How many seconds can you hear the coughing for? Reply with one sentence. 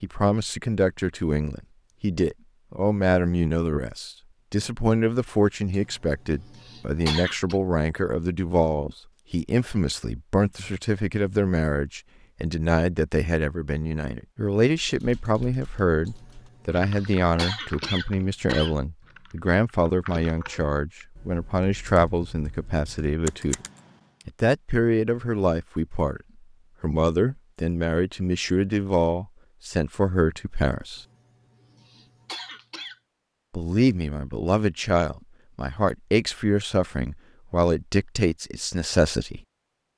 You can hear the coughing for 7 seconds altogether.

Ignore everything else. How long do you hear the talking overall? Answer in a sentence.
You can hear the talking for 36 seconds altogether.